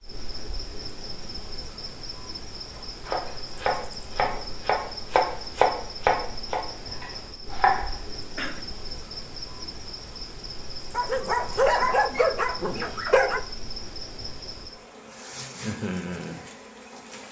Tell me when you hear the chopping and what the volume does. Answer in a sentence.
You can hear the chopping from 2.8 to 8.0 s, getting louder then quieter.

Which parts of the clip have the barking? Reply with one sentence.
The barking can be heard from 10.9 to 13.4 s.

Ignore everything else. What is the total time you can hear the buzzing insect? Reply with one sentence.
You can hear the buzzing insect for 17 seconds altogether.